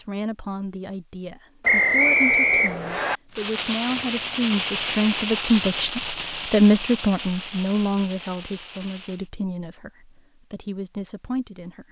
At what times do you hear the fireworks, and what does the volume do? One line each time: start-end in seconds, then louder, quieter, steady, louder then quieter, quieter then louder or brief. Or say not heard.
3.3-9.3 quieter.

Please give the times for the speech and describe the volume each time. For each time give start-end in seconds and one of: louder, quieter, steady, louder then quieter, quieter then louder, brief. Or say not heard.
0.0-11.8 louder then quieter.